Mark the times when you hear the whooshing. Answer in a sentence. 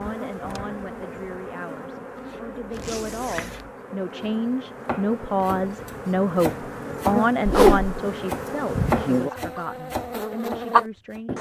You can hear the whooshing from 7.5 to 8.0 s.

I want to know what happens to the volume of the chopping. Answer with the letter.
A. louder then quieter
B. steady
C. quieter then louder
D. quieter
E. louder
A.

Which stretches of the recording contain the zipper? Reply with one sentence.
The zipper can be heard from 2.7 to 3.6 s.